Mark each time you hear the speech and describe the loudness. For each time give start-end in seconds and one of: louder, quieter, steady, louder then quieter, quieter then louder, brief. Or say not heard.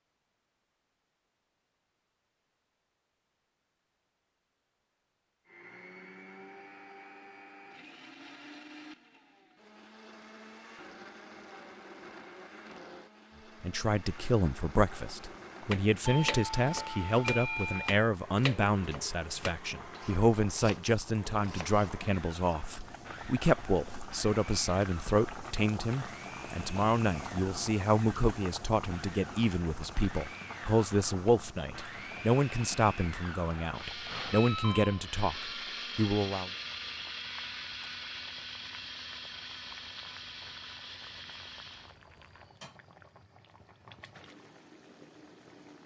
13.6-36.5 steady.